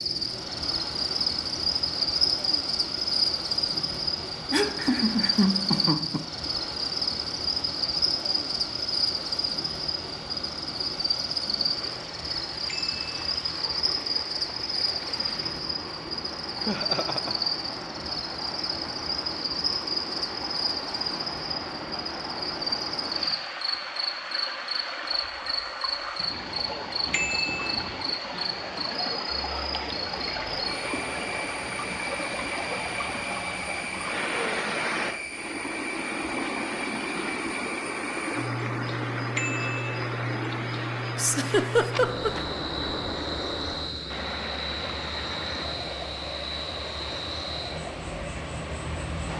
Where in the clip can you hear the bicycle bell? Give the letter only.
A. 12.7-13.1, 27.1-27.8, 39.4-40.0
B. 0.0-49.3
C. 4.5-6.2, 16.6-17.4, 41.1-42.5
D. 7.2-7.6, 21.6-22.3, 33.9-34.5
A.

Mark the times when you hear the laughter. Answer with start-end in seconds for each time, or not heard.
4.5-6.2, 16.6-17.4, 41.1-42.5.